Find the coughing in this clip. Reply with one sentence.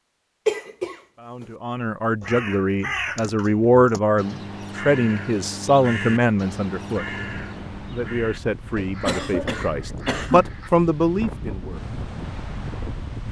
The coughing can be heard from 0.5 to 1.4 s and from 8.8 to 10.4 s.